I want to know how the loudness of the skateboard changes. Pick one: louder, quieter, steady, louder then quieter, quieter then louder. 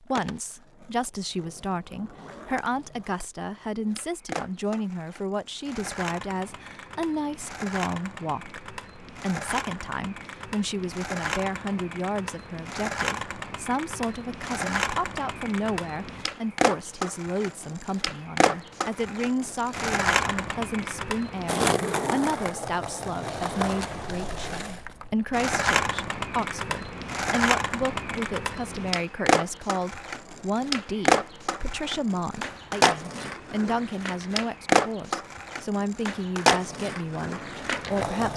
louder.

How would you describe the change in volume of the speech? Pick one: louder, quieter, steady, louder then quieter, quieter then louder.
steady.